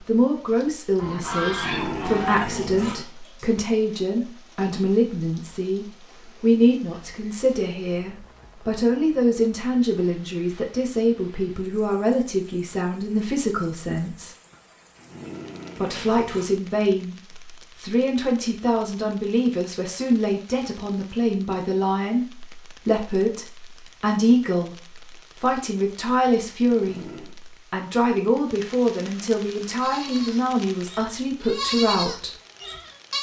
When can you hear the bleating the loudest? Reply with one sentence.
The volume of the bleating peaks at 32 seconds.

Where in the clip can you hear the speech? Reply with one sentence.
You can hear the speech from 0.1 to 14.3 s and from 15.8 to 32.4 s.